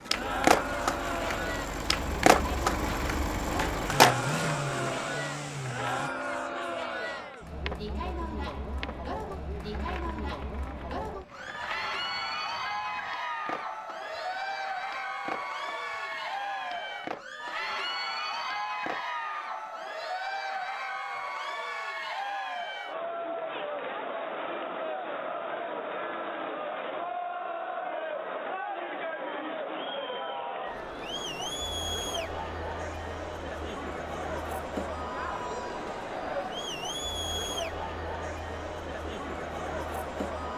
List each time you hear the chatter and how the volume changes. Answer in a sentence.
You can hear the chatter from 0.0 to 40.5 s, at a steady volume.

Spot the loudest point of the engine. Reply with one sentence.
The volume of the engine peaks at 4 seconds.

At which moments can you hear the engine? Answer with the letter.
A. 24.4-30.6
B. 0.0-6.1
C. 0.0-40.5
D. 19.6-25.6
B.